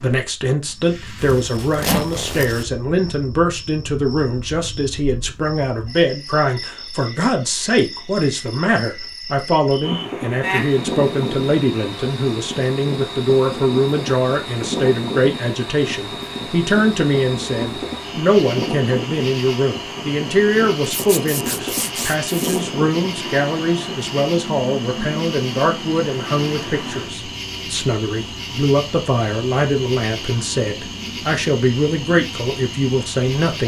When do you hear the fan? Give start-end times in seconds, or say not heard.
9.8-33.4.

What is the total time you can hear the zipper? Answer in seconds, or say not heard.
3 s.